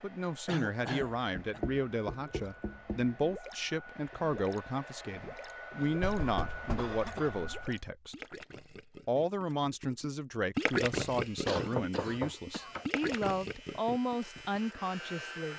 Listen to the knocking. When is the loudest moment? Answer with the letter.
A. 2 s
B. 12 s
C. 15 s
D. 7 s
B.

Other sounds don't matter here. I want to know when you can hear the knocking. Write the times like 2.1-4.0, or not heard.
1.1-3.1, 6.0-7.7, 11.4-13.3.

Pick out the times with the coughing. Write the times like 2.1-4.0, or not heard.
0.5-1.6, 5.8-7.5, 11.4-12.8.